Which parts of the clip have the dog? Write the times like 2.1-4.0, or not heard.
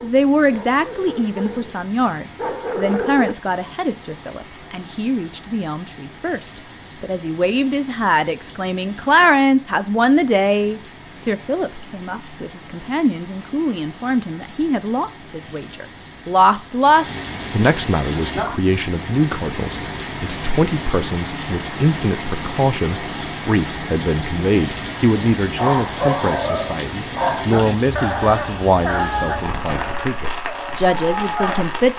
0.0-3.4, 25.4-31.6.